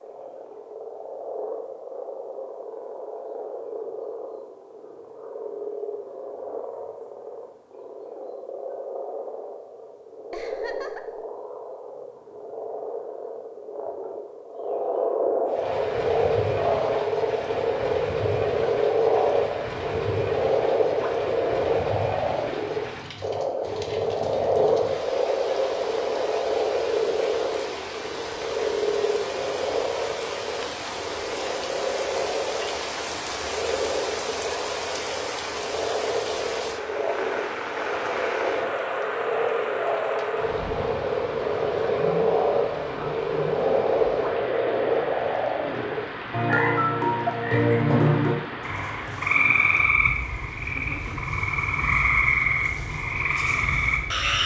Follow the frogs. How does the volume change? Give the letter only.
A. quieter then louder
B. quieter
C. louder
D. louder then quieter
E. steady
C.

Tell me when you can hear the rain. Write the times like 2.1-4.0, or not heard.
15.4-54.4.